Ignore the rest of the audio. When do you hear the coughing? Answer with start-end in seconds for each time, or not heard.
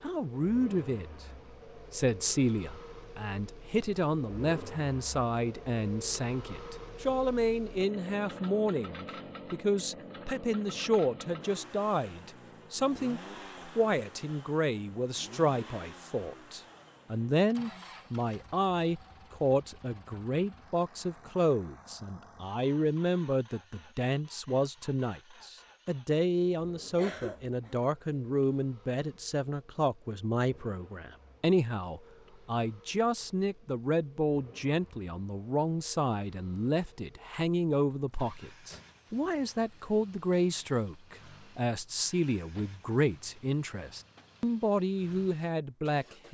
26.9-27.9.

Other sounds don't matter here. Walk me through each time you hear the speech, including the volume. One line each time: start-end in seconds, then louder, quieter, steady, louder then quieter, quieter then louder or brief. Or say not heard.
0.0-1.2 brief
1.9-46.2 steady.